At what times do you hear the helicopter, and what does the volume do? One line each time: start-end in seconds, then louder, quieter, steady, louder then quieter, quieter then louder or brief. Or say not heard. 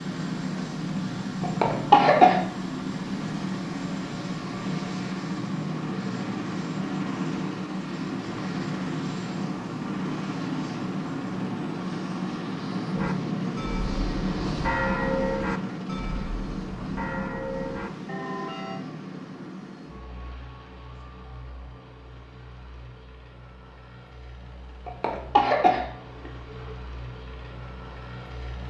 0.0-28.6 quieter.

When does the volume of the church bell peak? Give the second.
15 s.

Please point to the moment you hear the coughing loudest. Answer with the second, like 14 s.
2 s.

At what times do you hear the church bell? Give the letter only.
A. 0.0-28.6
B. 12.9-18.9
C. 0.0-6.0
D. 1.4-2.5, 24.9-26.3
B.